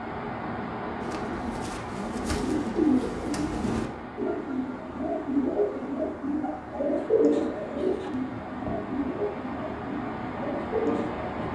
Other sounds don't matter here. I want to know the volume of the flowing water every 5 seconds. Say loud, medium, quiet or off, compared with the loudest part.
loud, medium, loud.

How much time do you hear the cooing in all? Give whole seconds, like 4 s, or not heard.
10 s.